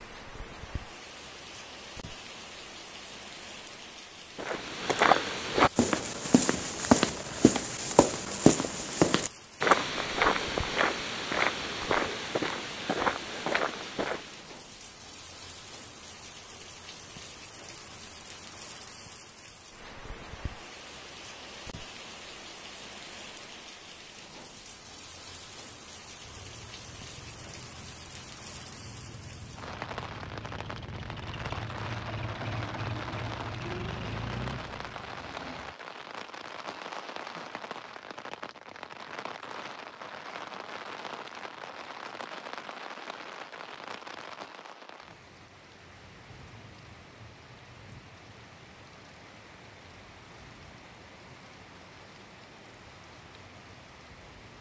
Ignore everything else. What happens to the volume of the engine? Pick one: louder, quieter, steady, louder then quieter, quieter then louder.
louder.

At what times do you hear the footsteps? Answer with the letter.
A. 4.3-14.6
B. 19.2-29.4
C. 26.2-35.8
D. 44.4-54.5
A.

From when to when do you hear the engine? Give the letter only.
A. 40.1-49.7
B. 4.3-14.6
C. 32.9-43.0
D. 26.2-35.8
D.